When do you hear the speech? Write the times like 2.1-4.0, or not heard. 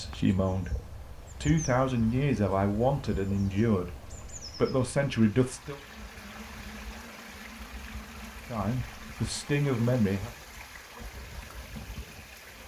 0.0-5.8, 8.4-10.3.